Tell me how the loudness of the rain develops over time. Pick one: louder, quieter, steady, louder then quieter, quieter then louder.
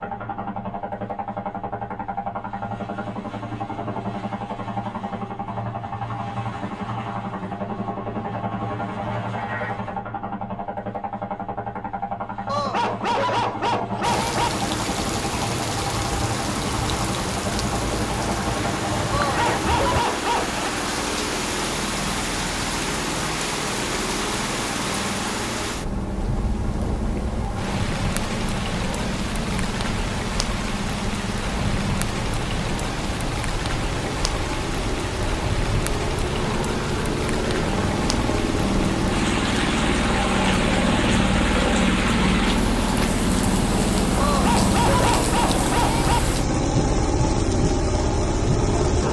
steady.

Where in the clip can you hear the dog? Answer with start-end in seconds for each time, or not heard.
12.4-14.5, 19.1-20.6, 44.2-46.2.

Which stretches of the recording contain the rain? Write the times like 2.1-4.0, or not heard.
14.0-49.0.